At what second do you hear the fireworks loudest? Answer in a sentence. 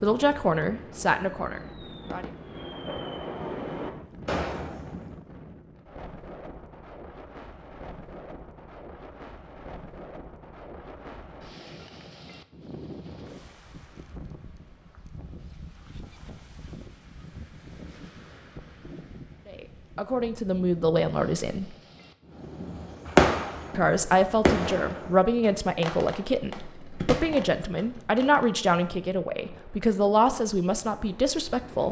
The volume of the fireworks peaks at 23 seconds.